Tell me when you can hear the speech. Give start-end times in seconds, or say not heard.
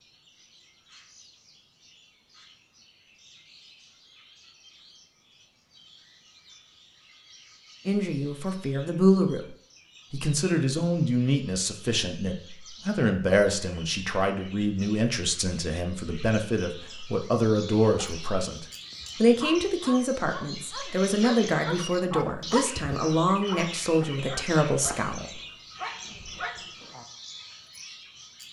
7.8-9.4, 10.1-25.4.